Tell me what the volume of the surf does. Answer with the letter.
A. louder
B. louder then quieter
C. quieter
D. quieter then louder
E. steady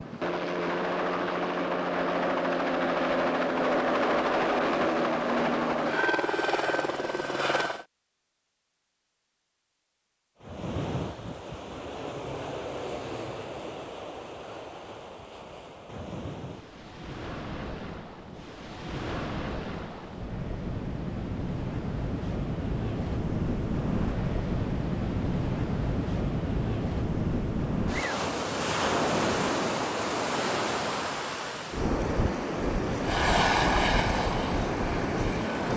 A.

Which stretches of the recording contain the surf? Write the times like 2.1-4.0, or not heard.
10.4-35.7.